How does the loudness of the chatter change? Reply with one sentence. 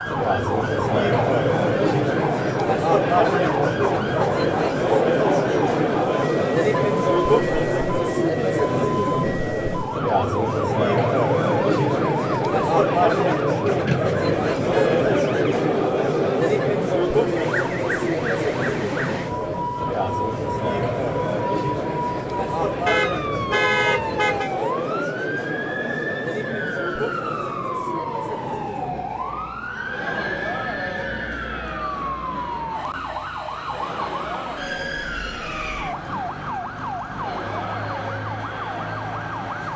The volume of the chatter goes down.